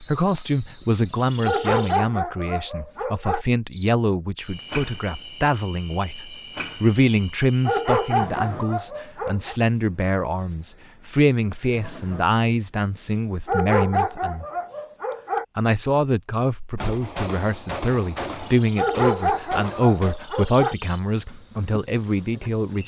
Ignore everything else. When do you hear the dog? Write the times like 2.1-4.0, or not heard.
1.4-3.5, 7.7-9.6, 13.4-15.4, 18.8-20.8.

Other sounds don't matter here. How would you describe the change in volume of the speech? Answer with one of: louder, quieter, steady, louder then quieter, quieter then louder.
steady.